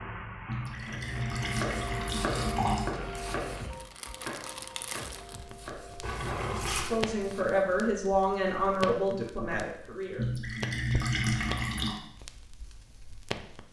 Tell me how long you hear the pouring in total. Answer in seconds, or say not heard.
5 s.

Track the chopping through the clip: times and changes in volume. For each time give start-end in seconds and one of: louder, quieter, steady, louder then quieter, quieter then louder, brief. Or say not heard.
0.8-7.8 quieter.